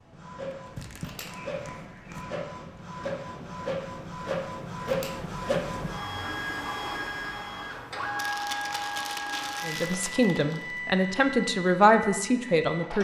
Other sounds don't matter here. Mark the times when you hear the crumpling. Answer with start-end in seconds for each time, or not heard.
0.5-2.2, 8.2-10.8.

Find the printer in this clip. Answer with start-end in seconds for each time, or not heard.
0.0-12.9.